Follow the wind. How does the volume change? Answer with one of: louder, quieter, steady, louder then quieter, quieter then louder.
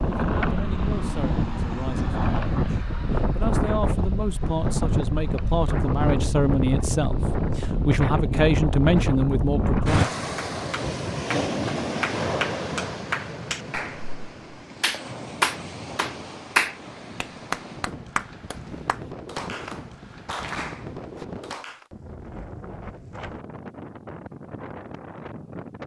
quieter.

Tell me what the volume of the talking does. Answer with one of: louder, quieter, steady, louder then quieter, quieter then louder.
louder.